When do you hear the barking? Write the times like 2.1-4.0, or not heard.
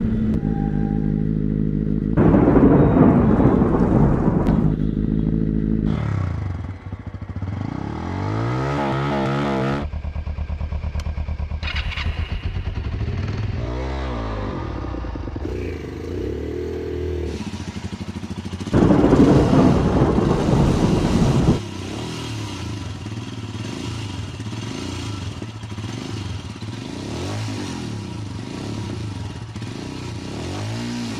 not heard.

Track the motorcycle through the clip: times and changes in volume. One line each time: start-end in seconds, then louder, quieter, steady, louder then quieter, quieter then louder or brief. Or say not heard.
0.0-31.1 quieter.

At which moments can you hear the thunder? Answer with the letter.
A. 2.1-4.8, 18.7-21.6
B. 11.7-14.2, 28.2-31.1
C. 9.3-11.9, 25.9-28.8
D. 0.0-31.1
A.